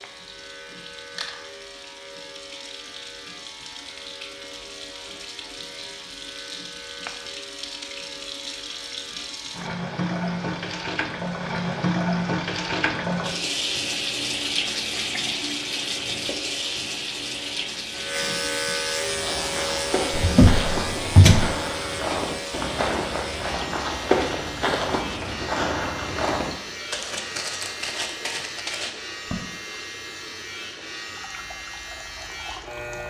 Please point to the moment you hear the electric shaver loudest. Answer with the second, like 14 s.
19 s.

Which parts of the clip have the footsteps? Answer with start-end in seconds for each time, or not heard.
19.1-29.4.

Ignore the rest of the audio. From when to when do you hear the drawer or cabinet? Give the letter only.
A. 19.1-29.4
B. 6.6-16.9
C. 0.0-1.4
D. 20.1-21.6
D.